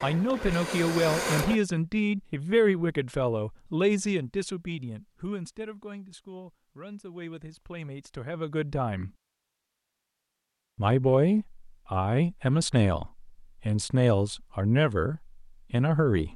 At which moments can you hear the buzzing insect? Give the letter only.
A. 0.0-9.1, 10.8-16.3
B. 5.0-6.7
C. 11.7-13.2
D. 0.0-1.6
D.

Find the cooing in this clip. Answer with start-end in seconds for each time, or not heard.
not heard.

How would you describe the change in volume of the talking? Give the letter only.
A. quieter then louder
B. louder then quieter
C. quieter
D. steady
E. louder
A.